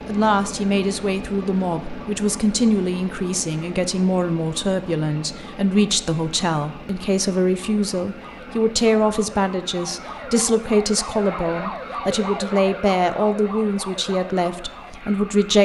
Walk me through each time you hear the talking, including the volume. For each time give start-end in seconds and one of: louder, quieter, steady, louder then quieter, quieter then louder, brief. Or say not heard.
0.1-15.6 steady.